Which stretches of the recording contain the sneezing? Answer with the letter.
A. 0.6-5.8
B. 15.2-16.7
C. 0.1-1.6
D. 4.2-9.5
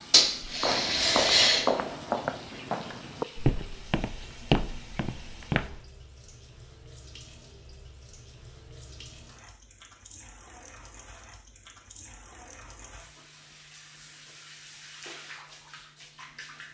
C.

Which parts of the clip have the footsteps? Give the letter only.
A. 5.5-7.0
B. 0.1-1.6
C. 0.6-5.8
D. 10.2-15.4
C.